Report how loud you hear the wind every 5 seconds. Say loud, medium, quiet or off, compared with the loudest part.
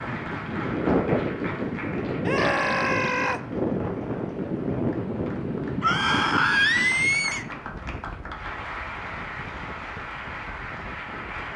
loud, medium, quiet.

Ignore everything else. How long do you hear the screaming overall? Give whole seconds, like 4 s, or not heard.
3 s.